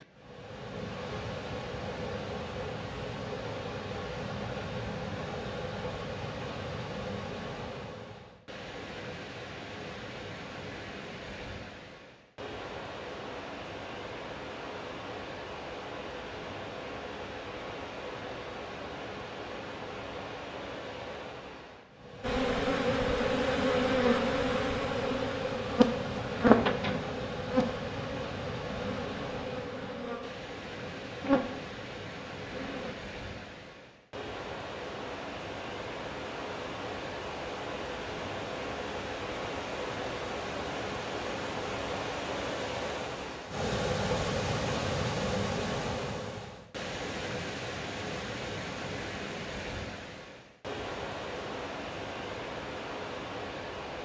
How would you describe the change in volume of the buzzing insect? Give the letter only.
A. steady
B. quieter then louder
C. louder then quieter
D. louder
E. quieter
B.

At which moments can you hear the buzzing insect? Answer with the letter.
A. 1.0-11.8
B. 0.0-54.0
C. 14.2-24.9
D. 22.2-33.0
D.